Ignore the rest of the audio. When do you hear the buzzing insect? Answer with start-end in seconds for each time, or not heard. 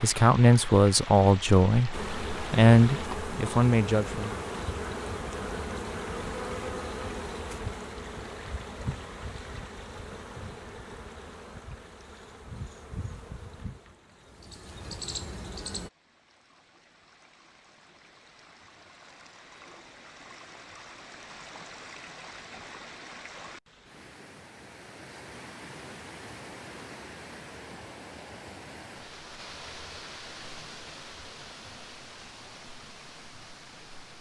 1.9-15.9.